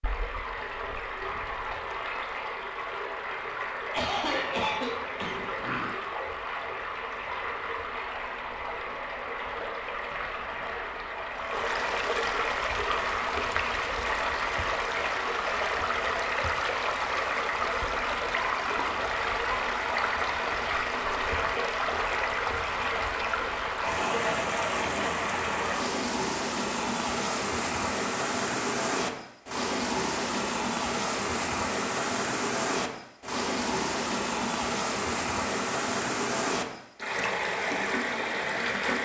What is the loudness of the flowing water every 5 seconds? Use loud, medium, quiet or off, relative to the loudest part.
medium, medium, loud, loud, loud, loud, loud, loud.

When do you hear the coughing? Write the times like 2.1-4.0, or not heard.
3.9-5.4.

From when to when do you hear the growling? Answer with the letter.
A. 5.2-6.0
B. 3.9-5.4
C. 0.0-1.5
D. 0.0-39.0
A.